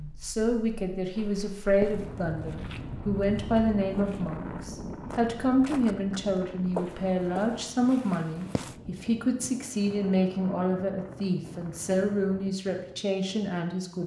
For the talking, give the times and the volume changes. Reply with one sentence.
You can hear the talking from 0.0 to 14.0 s, at a steady volume.